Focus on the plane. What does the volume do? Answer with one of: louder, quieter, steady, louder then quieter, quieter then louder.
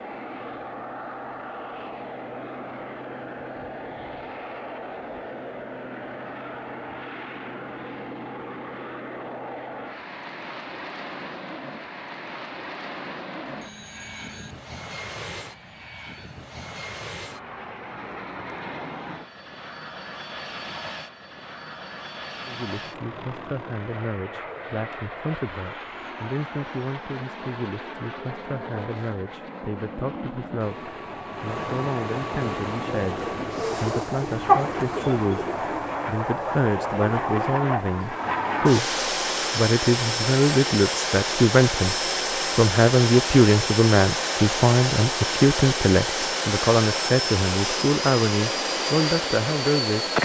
louder.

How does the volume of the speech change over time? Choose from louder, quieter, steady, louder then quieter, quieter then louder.
louder.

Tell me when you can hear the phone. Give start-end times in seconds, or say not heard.
13.4-14.6.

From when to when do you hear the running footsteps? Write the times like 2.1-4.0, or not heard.
not heard.